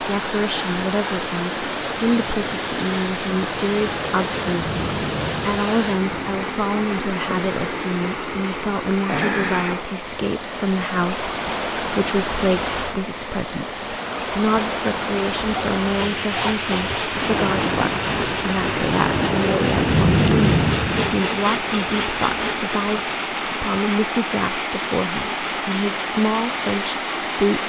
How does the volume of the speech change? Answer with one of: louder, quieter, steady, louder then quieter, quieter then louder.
steady.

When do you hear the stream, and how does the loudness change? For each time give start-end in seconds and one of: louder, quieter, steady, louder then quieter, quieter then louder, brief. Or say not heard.
0.0-27.6 steady.